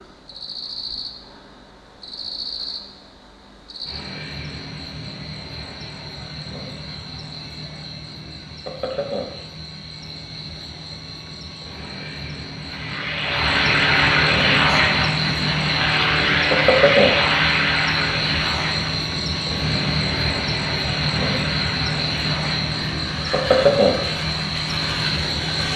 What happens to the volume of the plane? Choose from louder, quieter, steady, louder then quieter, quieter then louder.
quieter.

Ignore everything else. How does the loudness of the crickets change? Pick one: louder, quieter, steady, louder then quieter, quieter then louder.
louder.